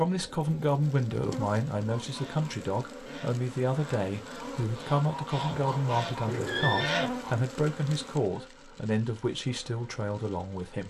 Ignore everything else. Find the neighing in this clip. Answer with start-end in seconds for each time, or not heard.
5.5-6.9.